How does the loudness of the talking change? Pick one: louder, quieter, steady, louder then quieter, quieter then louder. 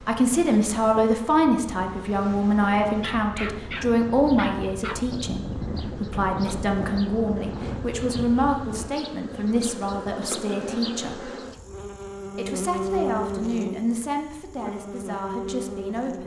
quieter.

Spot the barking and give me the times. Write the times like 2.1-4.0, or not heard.
3.0-5.0.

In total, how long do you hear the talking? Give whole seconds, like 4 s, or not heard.
15 s.